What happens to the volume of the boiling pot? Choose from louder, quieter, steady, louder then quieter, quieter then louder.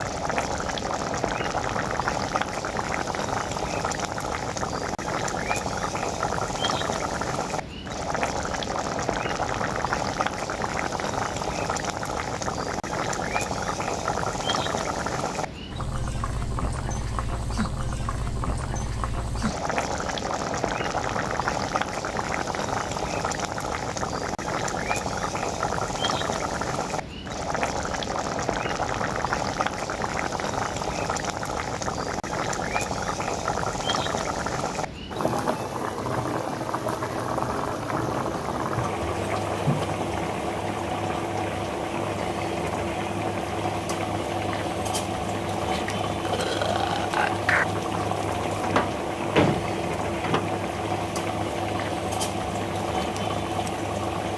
steady.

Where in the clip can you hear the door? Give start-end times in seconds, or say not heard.
48.6-50.5.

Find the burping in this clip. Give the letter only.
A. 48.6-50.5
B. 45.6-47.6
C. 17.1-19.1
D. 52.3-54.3
B.